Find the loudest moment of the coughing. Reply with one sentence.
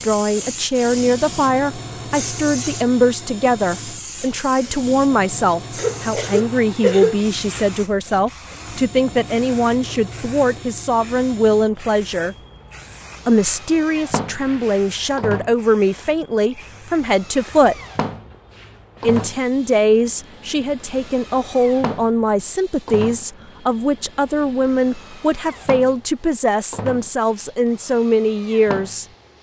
The loudest moment of the coughing is at 7 seconds.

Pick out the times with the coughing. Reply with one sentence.
The coughing can be heard from 5.8 to 7.2 s.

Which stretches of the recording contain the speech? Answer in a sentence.
You can hear the speech from 0.0 to 12.3 s, from 13.2 to 17.8 s and from 19.0 to 29.1 s.